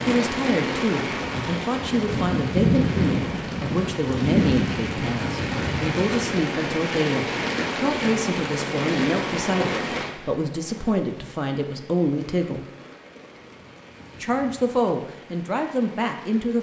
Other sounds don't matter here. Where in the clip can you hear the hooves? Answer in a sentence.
The hooves can't be heard in this clip.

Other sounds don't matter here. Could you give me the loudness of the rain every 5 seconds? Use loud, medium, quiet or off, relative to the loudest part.
loud, loud, quiet, quiet.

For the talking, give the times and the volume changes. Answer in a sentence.
The talking can be heard from 0.0 to 12.6 s, at a steady volume; and briefly from 14.2 to 16.5 s.